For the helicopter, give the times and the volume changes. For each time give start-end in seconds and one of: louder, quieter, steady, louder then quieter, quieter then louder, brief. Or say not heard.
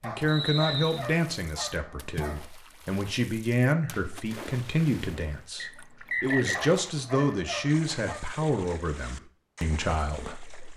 not heard.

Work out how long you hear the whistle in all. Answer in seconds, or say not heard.
2 s.